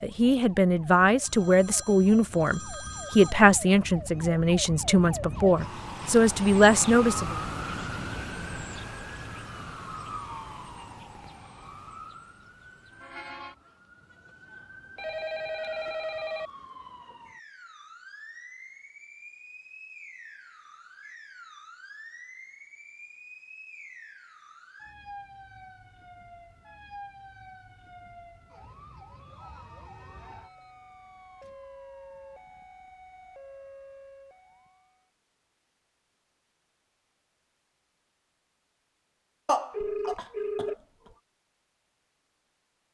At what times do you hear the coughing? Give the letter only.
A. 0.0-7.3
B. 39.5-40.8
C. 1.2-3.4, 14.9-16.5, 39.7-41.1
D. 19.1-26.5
B.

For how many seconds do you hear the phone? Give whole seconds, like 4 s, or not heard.
5 s.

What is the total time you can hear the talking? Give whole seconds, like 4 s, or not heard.
7 s.